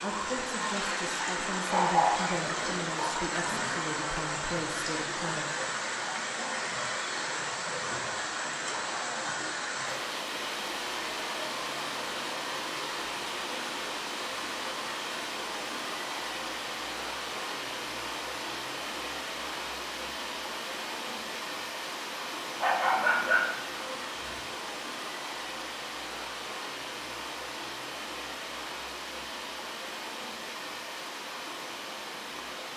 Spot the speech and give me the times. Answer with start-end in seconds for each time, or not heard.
0.0-5.5.